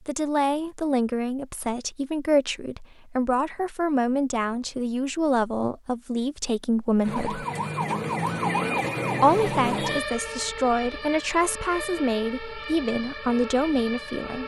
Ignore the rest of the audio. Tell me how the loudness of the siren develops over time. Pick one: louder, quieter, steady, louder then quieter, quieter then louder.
quieter.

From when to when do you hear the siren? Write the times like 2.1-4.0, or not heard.
7.0-14.4.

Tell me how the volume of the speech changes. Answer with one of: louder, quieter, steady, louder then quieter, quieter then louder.
steady.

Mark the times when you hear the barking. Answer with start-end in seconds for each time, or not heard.
not heard.